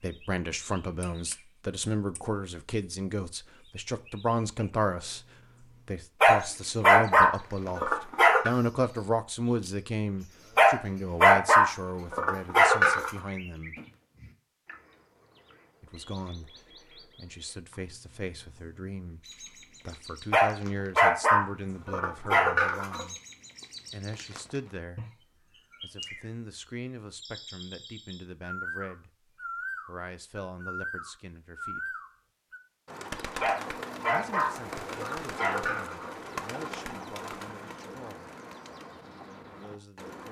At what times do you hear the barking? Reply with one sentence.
The barking can be heard from 6.2 to 8.5 s, from 10.6 to 13.1 s, from 20.3 to 23.1 s and from 33.4 to 36.1 s.